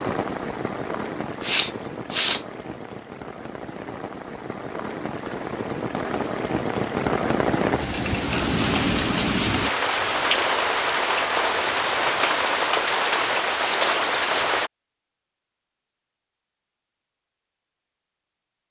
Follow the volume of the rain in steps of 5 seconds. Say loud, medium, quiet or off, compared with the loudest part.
medium, loud, loud, off.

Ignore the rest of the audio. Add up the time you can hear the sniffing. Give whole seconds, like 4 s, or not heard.
2 s.